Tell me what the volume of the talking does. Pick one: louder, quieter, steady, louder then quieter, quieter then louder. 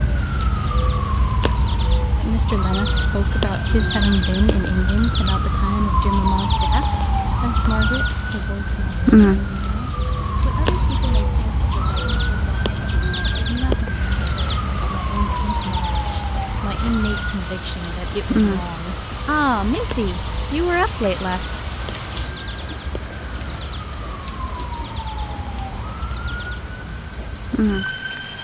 quieter then louder.